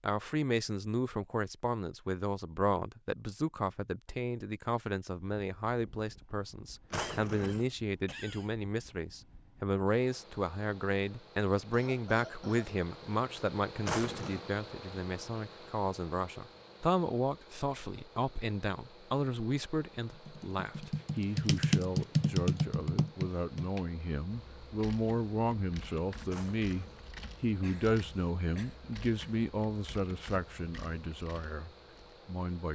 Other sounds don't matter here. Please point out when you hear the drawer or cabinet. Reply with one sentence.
You can hear the drawer or cabinet from 6.9 to 7.7 s, from 13.8 to 14.4 s and from 26.2 to 27.1 s.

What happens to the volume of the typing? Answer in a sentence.
The loudness of the typing goes down.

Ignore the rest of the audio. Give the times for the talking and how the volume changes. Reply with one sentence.
The talking can be heard from 0.0 to 32.6 s, at a steady volume.